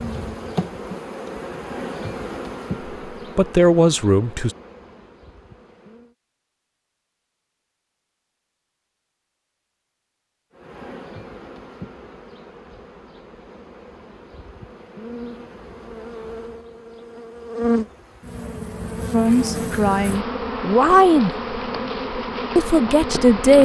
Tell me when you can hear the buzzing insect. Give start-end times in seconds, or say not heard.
0.0-6.2, 10.6-23.6.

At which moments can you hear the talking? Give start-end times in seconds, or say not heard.
3.4-4.5, 19.1-21.3, 22.6-23.6.